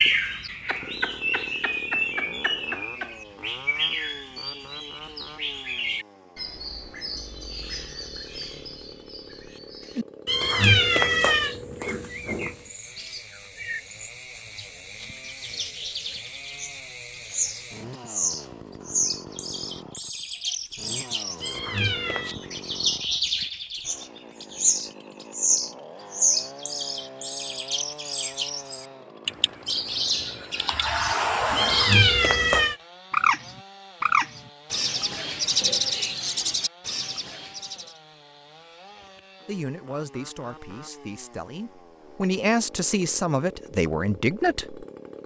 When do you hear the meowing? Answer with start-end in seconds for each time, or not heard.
10.2-12.6, 21.4-22.4, 31.6-32.8.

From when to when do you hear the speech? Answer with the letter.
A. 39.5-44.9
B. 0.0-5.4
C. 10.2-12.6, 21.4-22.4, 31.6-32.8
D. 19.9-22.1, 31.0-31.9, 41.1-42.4
A.